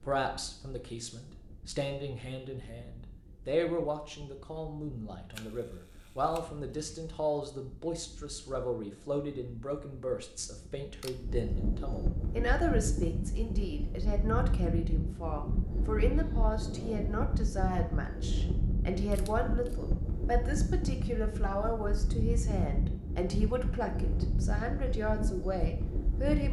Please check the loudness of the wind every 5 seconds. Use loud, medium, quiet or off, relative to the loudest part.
quiet, quiet, loud, loud, loud, loud.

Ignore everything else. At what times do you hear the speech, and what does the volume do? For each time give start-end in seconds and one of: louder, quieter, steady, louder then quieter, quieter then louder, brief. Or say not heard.
0.0-26.4 steady.